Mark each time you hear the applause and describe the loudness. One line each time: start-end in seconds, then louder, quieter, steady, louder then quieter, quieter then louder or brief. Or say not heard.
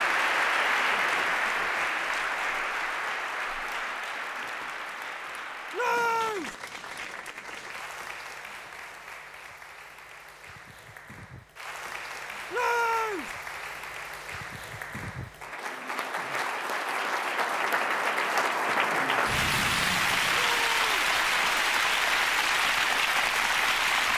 0.0-24.1 quieter then louder.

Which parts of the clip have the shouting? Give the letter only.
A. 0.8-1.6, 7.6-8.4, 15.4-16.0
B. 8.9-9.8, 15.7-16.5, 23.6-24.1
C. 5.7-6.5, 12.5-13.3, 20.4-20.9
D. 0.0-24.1
C.